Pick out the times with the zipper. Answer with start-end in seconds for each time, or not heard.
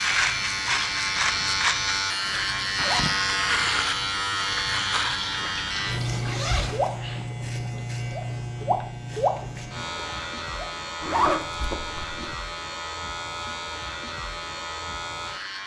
2.8-3.4, 5.3-7.2, 11.0-12.3.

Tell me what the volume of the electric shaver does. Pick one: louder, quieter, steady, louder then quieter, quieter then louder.
quieter.